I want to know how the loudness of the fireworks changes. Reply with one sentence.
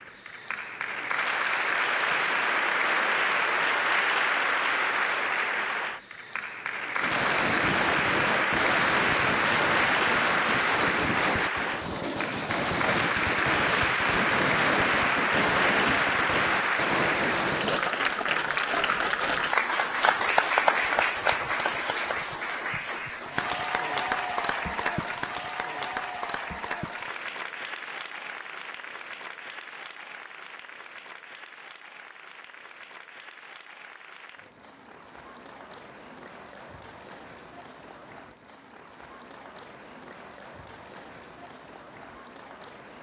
The loudness of the fireworks stays about the same.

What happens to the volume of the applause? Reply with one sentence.
The loudness of the applause goes down.